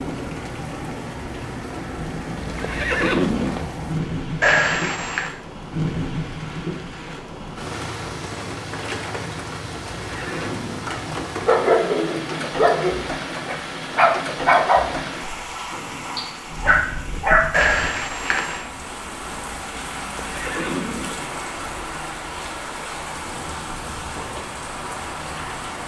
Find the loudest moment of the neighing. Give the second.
3 s.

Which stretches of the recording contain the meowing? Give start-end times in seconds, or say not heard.
4.4-5.3, 17.5-18.7.